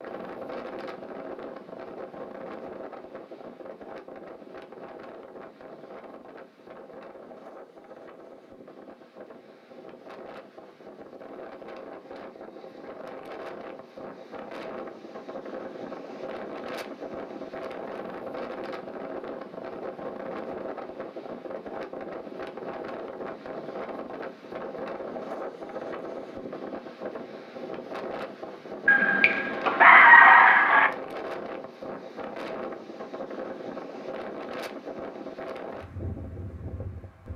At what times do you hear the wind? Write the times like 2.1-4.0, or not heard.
0.0-37.3.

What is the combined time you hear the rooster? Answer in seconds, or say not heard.
2 s.